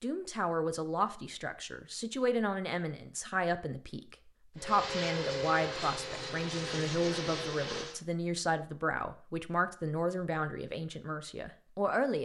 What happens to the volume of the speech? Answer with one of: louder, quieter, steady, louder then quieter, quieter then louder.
steady.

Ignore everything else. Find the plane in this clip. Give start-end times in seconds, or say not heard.
4.5-8.0.